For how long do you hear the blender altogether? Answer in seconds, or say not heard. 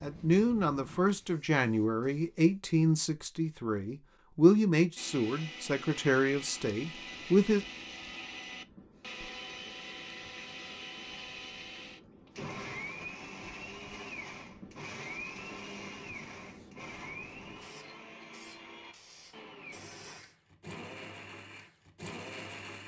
18 s.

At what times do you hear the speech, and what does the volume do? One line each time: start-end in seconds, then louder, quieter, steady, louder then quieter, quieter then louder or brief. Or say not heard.
0.0-7.7 steady.